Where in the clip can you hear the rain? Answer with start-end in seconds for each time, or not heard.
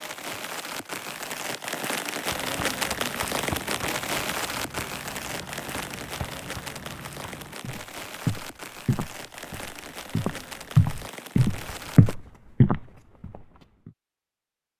0.0-12.2.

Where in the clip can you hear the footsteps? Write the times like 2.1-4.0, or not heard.
2.2-13.9.